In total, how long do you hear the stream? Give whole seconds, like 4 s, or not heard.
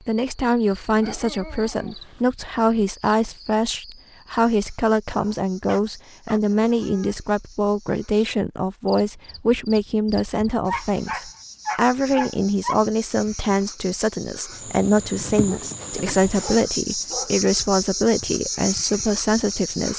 not heard.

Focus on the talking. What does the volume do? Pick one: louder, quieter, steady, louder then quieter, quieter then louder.
steady.